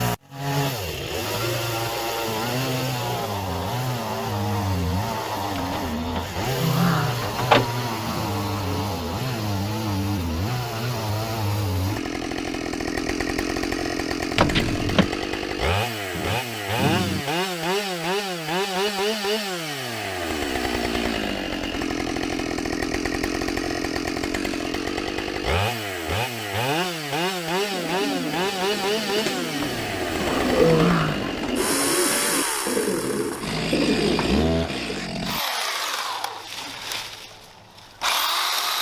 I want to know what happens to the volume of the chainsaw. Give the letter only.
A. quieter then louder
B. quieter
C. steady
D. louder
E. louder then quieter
C.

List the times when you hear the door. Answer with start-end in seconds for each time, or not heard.
5.5-7.7, 14.3-15.1, 29.6-31.4.